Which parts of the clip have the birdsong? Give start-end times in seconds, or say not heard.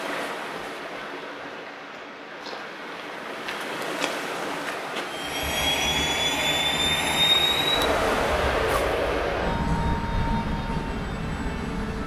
not heard.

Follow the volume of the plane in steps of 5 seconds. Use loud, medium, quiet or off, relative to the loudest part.
off, loud, medium.